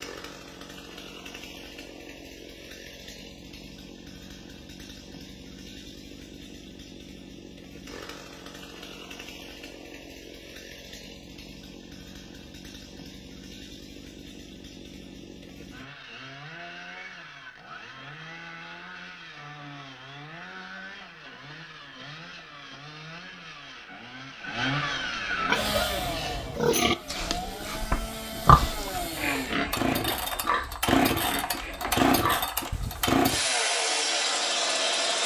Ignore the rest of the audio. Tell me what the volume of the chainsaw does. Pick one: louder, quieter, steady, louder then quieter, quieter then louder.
louder.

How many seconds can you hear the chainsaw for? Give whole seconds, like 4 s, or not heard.
35 s.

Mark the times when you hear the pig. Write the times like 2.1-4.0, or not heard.
25.4-33.1.